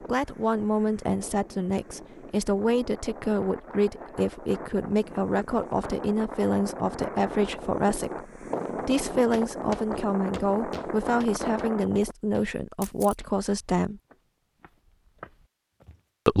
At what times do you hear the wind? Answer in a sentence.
The wind can be heard from 0.0 to 12.2 s.